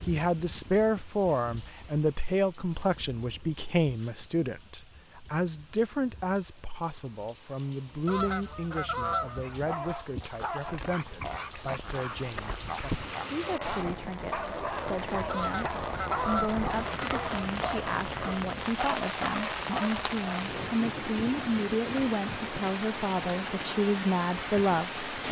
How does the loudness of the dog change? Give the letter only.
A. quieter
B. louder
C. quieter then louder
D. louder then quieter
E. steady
E.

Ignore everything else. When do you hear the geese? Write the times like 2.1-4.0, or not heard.
8.1-9.6, 15.3-17.3.